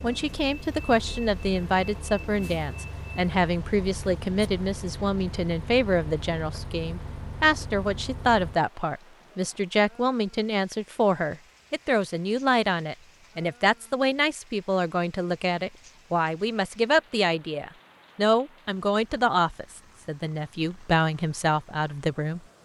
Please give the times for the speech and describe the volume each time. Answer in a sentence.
You can hear the speech from 0.0 to 22.4 s, at a steady volume.